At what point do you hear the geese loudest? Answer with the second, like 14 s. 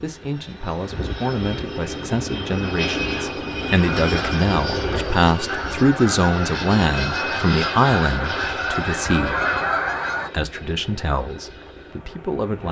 10 s.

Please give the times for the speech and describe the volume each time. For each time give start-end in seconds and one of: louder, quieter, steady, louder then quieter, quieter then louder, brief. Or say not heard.
0.0-9.3 louder
10.3-12.6 brief.